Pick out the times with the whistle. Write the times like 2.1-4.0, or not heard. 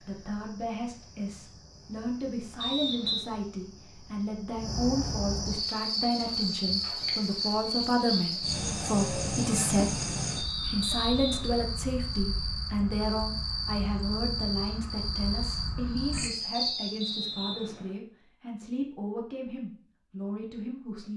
2.6-3.2, 10.4-11.7, 16.6-17.9.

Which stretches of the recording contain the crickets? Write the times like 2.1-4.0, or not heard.
0.0-17.2.